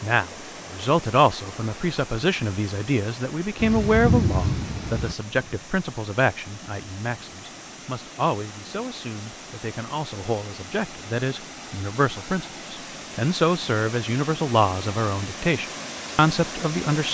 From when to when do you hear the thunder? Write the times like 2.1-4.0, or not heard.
3.5-5.2.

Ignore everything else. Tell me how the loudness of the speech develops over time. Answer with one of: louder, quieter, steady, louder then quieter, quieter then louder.
quieter then louder.